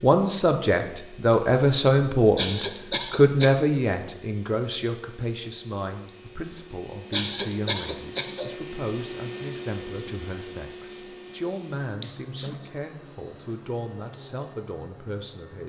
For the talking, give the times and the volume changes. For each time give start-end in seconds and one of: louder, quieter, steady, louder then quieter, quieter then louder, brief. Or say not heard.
0.0-15.6 quieter.